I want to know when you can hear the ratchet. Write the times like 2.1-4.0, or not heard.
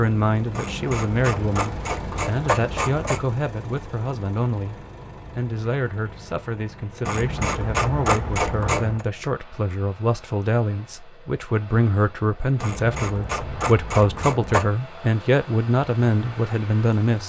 0.5-3.2, 7.0-9.1, 12.6-14.7.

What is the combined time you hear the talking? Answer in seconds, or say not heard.
17 s.